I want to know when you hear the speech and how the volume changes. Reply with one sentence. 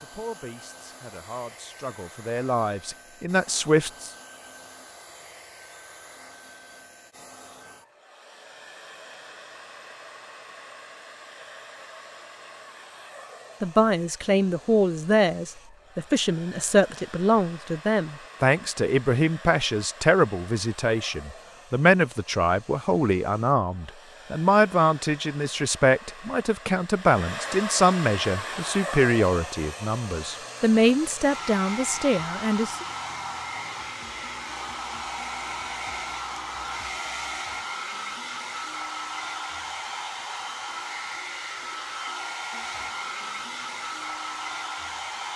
The speech can be heard from 0.0 to 4.1 s, getting louder; and from 13.6 to 32.9 s, at a steady volume.